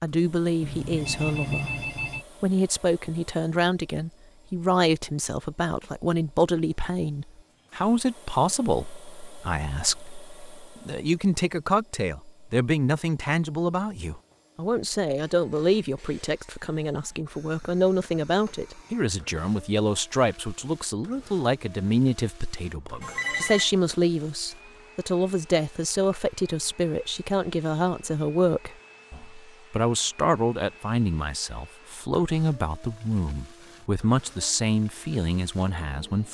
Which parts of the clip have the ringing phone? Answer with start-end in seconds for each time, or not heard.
0.6-2.2, 23.0-23.7.